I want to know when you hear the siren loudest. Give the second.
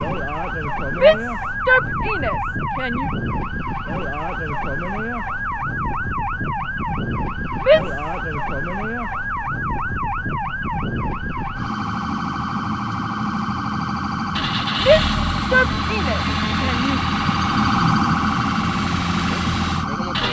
18 s.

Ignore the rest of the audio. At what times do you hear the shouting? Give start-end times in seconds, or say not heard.
1.0-3.1, 7.7-8.2, 14.8-17.0.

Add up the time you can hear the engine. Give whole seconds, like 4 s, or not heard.
6 s.